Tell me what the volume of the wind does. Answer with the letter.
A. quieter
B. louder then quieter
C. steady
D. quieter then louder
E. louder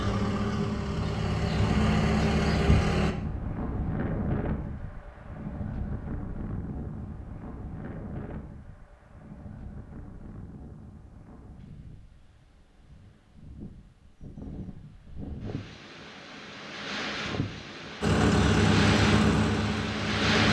D.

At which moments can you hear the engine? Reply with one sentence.
You can hear the engine from 0.0 to 3.1 s and from 18.0 to 20.4 s.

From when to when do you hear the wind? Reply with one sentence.
The wind can be heard from 3.1 to 20.4 s.